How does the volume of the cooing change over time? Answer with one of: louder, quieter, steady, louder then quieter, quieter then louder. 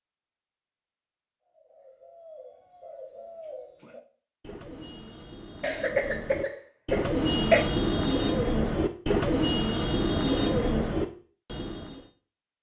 louder.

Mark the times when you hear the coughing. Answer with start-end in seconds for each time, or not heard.
5.6-7.7.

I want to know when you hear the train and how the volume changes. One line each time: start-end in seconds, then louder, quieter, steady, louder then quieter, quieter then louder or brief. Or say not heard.
not heard.